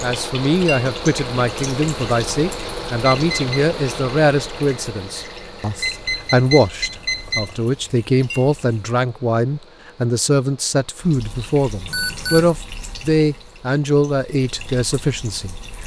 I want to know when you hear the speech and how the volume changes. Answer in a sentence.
The speech can be heard from 0.0 to 15.6 s, at a steady volume.